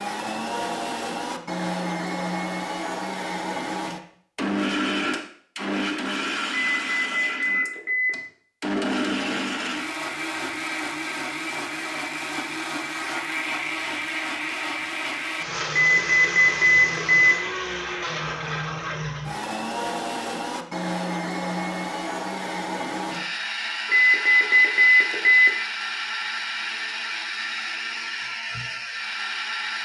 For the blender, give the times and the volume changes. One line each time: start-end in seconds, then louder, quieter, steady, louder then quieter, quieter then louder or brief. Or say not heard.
0.0-29.7 steady.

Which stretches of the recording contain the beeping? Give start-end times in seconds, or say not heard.
6.7-8.2, 15.8-17.4, 23.9-25.6.